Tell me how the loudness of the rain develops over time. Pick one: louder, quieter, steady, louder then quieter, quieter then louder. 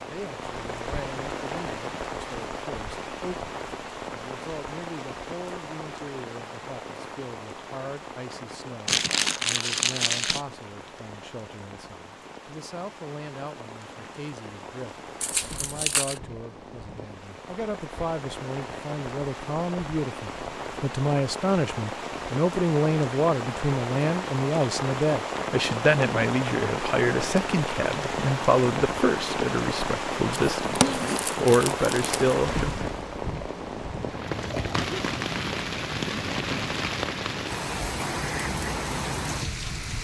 quieter then louder.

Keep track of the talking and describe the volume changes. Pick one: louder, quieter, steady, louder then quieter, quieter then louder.
louder.